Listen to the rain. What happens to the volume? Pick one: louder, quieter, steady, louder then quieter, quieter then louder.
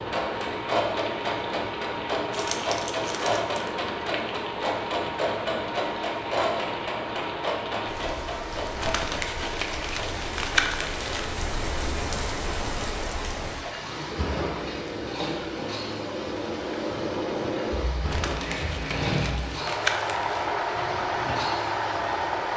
steady.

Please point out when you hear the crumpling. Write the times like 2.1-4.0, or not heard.
2.3-3.7, 8.8-11.4, 18.1-20.5.